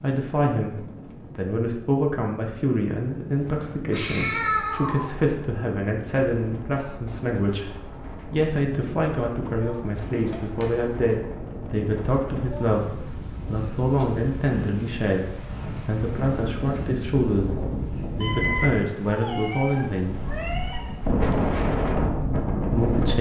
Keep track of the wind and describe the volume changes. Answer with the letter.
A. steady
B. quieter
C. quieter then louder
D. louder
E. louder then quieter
D.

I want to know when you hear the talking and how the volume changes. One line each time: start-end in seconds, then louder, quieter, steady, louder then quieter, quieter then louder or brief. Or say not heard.
0.0-20.2 steady
22.7-23.1 brief.